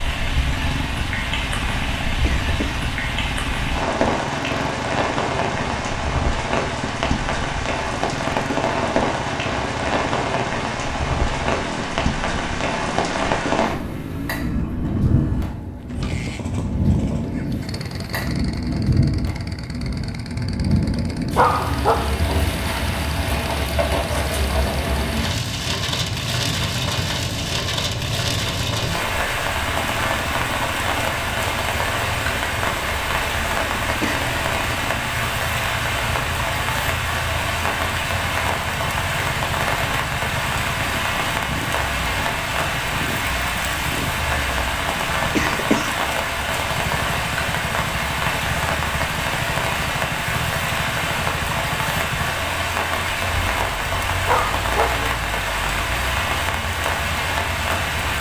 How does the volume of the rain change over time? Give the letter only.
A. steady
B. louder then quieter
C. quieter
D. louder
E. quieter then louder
A.